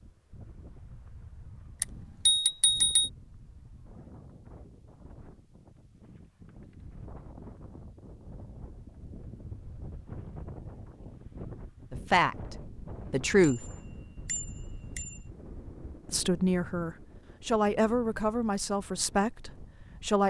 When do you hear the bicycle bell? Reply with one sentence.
The bicycle bell can be heard from 1.8 to 3.1 s and from 13.4 to 15.2 s.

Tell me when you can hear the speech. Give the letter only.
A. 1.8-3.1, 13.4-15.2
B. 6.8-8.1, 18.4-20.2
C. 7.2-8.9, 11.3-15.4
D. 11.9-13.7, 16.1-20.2
D.